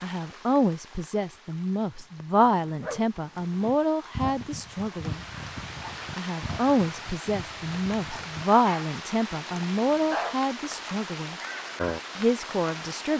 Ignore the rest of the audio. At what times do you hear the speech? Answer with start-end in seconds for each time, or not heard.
0.0-5.2, 6.2-11.3, 12.2-13.1.